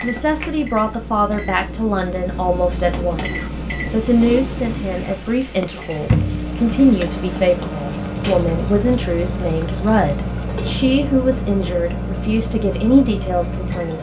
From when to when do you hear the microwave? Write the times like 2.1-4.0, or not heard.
0.0-13.9.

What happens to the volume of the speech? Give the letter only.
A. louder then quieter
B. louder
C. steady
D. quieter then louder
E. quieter
C.